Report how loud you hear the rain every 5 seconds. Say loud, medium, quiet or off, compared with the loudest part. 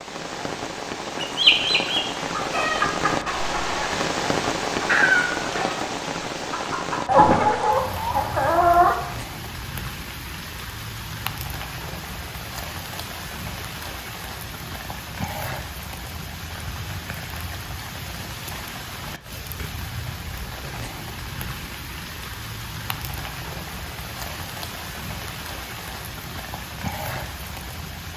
loud, loud, medium, medium, medium, medium.